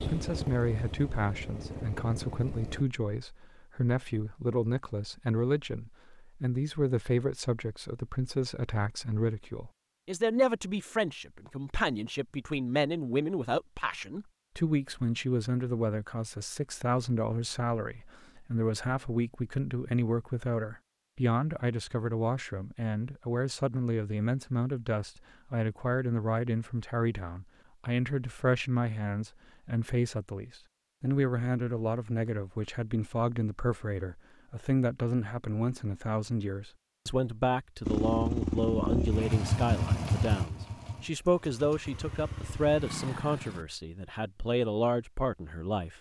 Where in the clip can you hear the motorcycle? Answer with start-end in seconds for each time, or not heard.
0.0-2.9, 37.8-43.6.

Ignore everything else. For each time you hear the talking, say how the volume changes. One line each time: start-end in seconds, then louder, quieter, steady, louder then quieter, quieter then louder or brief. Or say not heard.
0.1-45.9 steady.